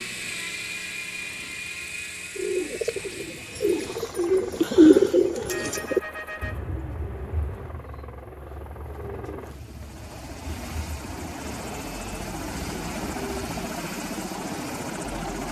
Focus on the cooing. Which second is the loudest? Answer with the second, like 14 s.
5 s.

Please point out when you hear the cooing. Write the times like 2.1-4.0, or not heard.
2.4-13.7.